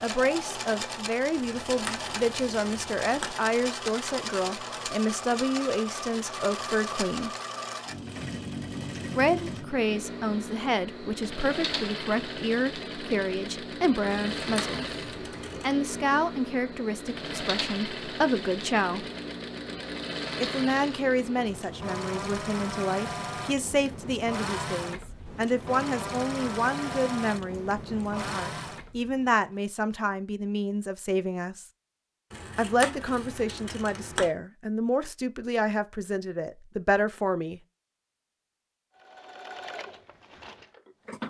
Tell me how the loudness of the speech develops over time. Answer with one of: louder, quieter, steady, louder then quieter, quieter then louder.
steady.